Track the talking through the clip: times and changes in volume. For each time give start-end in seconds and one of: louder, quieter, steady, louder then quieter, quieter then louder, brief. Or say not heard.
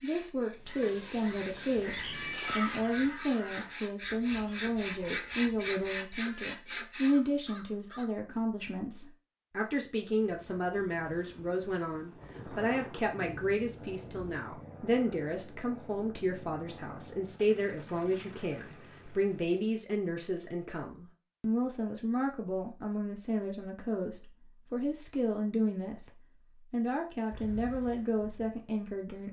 0.0-26.1 steady
26.7-29.2 brief.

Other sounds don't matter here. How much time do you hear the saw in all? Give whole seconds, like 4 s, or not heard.
7 s.